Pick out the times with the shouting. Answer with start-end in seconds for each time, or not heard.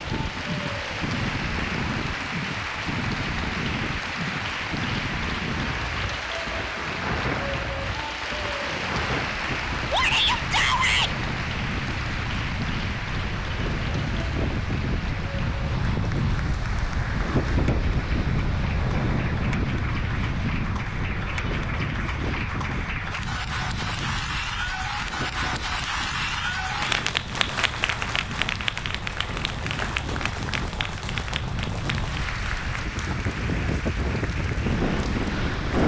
9.9-11.1.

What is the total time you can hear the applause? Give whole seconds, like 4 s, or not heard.
36 s.